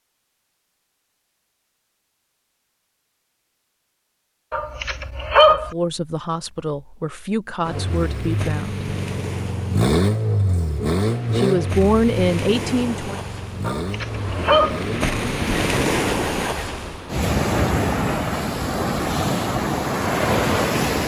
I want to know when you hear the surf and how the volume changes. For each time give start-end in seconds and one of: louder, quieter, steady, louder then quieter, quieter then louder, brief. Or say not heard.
7.6-21.0 louder.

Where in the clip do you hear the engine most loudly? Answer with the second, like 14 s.
10 s.